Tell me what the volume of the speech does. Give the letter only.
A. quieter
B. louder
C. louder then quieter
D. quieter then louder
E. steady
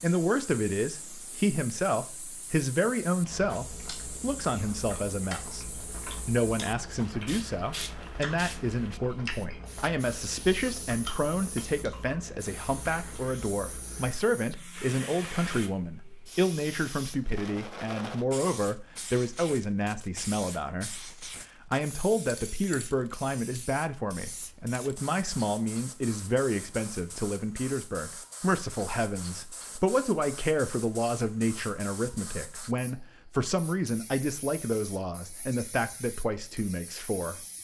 E.